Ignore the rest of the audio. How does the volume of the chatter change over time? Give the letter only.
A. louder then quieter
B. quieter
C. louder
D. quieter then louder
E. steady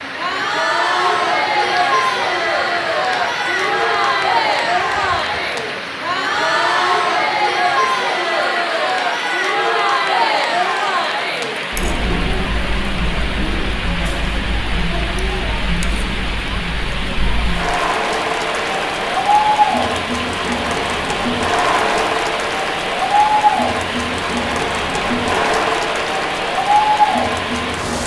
D.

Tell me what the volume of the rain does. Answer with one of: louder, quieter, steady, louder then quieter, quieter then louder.
steady.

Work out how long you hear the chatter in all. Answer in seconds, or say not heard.
28 s.